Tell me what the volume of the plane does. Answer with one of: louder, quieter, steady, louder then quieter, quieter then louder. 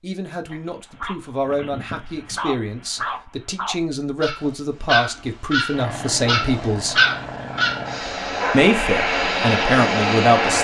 louder.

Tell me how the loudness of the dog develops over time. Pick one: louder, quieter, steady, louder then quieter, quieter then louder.
louder.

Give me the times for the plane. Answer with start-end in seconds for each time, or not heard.
5.7-10.5.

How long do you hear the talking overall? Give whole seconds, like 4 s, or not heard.
9 s.